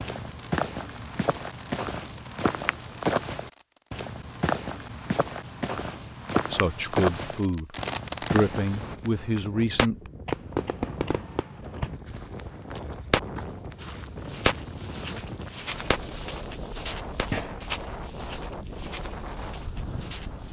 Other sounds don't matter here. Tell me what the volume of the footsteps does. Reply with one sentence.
The volume of the footsteps goes down.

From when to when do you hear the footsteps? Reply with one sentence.
The footsteps can be heard from 0.0 to 8.9 s and from 11.6 to 20.4 s.